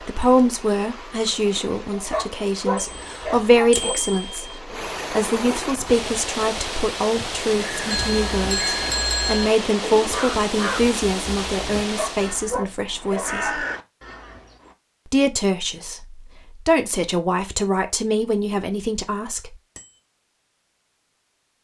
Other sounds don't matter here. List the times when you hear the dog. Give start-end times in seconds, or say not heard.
1.9-4.0, 11.8-13.7.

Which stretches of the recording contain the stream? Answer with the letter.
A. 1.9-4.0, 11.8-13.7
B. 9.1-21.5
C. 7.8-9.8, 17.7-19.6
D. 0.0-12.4
D.